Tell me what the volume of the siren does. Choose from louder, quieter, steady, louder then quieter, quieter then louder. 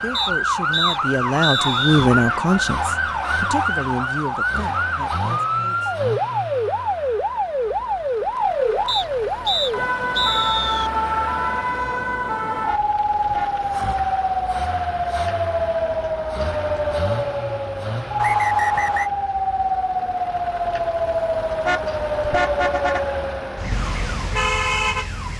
steady.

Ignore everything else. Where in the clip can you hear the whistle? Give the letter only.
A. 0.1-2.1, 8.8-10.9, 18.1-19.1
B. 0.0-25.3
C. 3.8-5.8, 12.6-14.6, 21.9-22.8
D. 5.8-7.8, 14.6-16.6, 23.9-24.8
A.